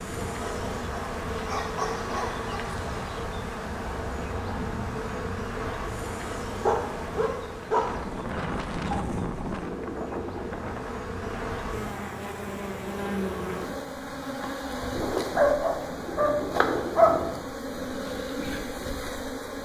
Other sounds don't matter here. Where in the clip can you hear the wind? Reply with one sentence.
You can hear the wind from 0.0 to 11.9 s.